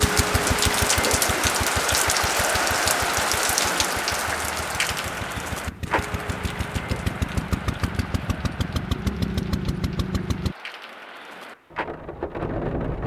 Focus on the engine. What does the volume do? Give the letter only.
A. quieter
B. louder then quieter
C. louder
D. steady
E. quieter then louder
E.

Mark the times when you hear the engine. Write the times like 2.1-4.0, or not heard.
0.0-10.6.